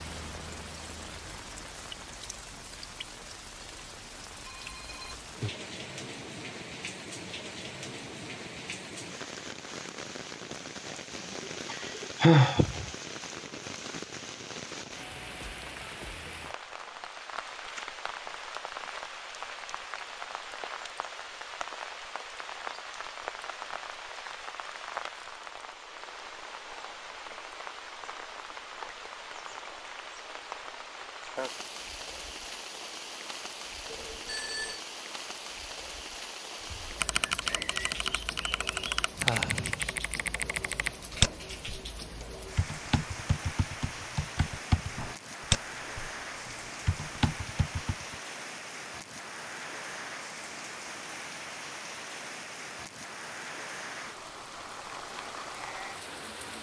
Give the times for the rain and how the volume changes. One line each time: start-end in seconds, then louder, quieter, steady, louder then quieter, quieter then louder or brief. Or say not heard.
0.0-56.5 steady.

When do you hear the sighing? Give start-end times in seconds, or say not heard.
11.7-12.9, 39.1-39.9.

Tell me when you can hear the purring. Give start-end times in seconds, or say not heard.
not heard.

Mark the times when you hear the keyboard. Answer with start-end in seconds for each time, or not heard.
36.6-48.1.